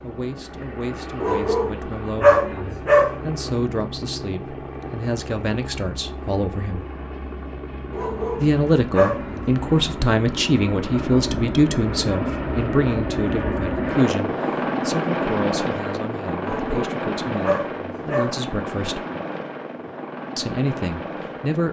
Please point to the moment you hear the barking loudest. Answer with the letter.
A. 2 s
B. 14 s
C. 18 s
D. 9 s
A.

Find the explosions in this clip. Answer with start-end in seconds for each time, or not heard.
not heard.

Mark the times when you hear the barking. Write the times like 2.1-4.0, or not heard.
1.2-3.2, 7.9-9.5, 16.4-18.4.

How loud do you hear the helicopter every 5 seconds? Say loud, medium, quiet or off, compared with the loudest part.
medium, medium, loud, loud, medium.